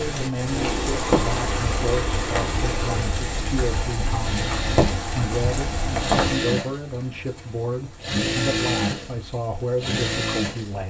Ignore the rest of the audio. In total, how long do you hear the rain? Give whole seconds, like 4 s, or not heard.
11 s.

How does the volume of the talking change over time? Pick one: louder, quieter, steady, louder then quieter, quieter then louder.
steady.